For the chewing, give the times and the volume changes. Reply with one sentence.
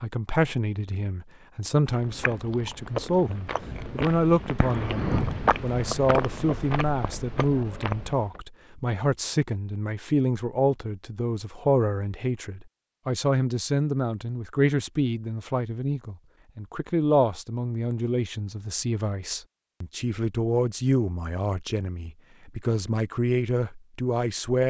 The chewing can be heard from 1.9 to 8.4 s, getting louder then quieter.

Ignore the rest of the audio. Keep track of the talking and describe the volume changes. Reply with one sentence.
The volume of the talking stays about the same.